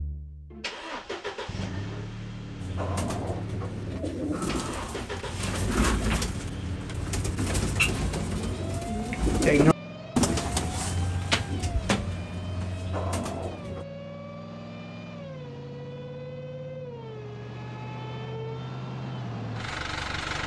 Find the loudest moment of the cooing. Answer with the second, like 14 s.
10 s.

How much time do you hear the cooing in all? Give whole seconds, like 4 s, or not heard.
11 s.